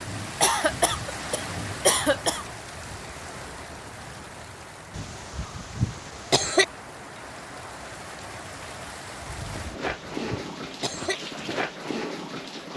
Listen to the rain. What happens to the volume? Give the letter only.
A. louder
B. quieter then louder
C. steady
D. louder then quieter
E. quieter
B.